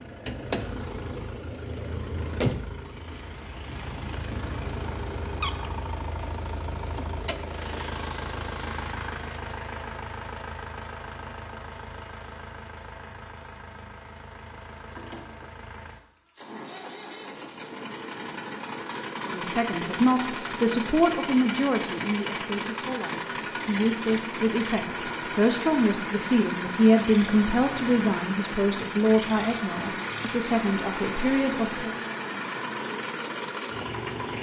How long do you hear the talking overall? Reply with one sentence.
You can hear the talking for 13 seconds altogether.